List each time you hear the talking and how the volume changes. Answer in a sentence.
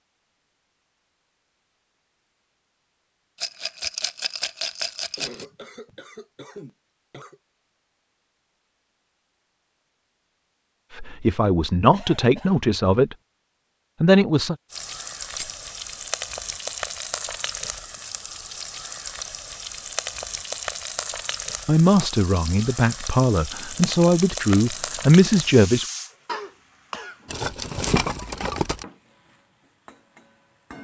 The talking can be heard briefly from 10.9 to 13.2 s; briefly from 14.0 to 14.6 s; and from 21.6 to 25.9 s, getting louder.